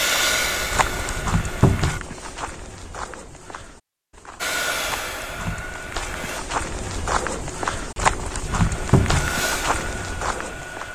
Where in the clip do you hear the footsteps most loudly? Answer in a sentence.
The volume of the footsteps peaks at 8 seconds.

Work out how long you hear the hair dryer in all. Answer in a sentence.
You can hear the hair dryer for 6 seconds altogether.